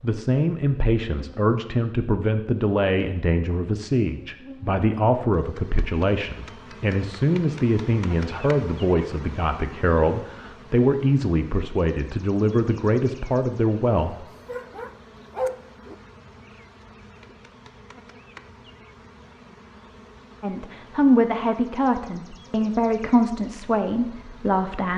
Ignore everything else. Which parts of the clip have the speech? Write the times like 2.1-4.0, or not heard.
0.0-14.2, 20.4-24.9.